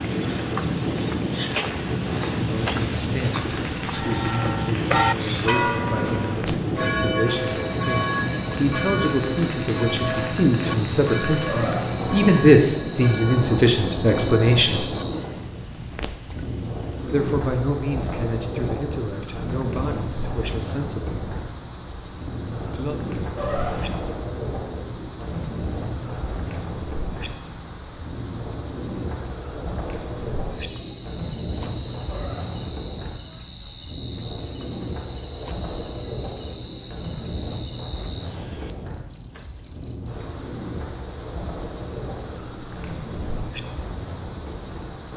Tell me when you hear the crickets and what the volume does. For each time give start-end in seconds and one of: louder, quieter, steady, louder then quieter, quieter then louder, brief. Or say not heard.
0.0-45.1 steady.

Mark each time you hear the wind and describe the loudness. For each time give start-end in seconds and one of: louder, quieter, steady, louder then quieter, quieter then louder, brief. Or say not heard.
0.0-45.1 quieter.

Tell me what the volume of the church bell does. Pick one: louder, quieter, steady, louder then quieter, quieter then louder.
quieter.